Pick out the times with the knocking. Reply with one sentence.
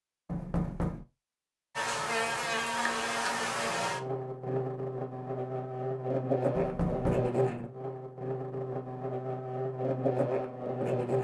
You can hear the knocking from 0.2 to 1.1 s and from 6.5 to 7.3 s.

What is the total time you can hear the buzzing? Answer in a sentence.
The buzzing can be heard for 9 seconds in total.